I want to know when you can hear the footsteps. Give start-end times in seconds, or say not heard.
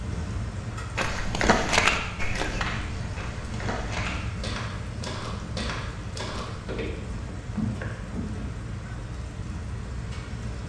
0.9-8.7.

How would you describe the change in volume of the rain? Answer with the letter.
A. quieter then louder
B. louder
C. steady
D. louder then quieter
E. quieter
C.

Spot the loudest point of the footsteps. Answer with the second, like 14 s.
2 s.